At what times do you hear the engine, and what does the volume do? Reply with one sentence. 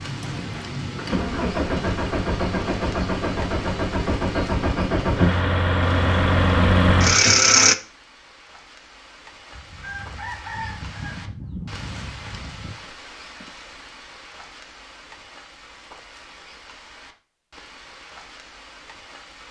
You can hear the engine from 0.0 to 7.8 s, getting louder.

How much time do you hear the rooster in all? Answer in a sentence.
You can hear the rooster for 3 seconds altogether.